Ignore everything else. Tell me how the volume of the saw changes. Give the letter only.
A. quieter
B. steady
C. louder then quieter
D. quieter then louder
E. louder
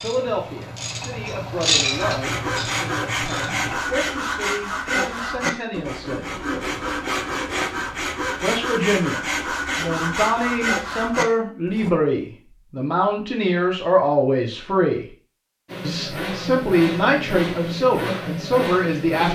B.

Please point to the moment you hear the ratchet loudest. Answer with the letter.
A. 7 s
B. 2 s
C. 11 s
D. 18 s
B.